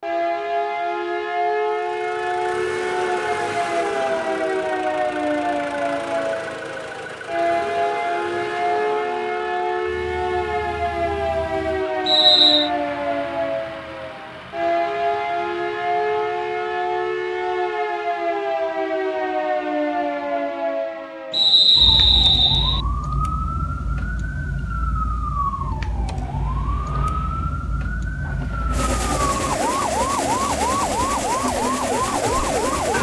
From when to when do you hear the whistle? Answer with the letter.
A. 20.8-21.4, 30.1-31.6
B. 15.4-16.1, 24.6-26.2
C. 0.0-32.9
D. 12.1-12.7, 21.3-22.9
D.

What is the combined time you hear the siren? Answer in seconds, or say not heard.
33 s.